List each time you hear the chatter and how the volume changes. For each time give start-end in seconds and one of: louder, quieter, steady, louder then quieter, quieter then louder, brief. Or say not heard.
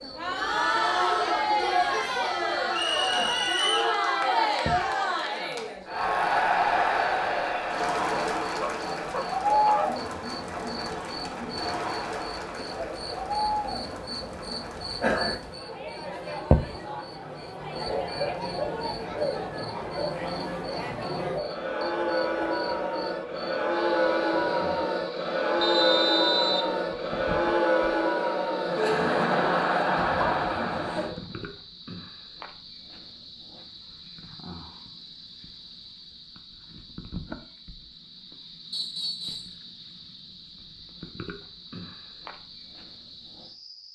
0.0-31.1 quieter then louder.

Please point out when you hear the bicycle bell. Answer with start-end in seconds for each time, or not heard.
not heard.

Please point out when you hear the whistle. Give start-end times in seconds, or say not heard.
2.7-4.0, 25.6-26.7, 38.7-39.5.